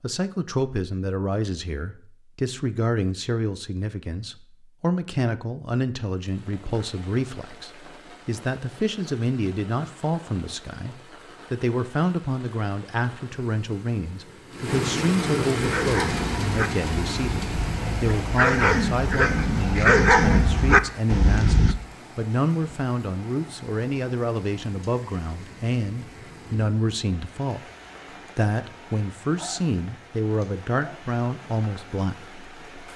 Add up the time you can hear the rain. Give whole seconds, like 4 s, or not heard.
27 s.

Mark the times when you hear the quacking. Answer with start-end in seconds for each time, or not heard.
not heard.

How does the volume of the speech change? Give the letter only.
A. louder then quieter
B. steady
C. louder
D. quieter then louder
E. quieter
B.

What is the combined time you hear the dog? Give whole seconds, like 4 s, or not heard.
6 s.